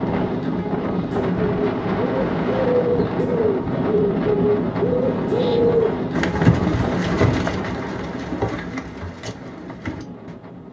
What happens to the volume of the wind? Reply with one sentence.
The volume of the wind goes down.